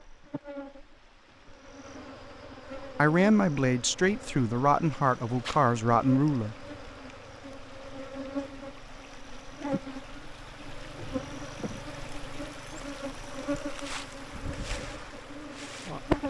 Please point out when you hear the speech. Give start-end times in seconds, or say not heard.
2.8-6.7.